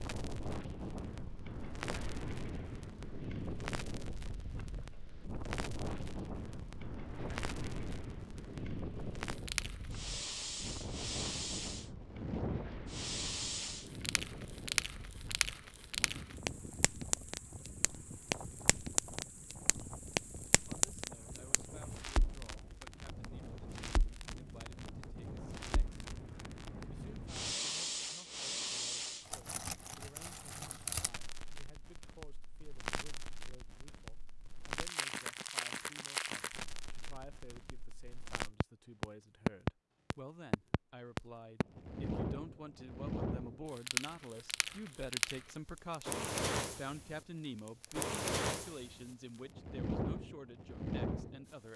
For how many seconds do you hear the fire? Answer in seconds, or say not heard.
52 s.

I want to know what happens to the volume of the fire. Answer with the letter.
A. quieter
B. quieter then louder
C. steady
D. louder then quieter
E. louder
E.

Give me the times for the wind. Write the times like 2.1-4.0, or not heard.
0.0-27.6.